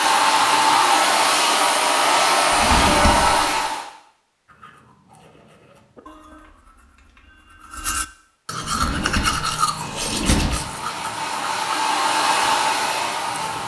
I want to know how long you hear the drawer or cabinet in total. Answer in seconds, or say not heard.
3 s.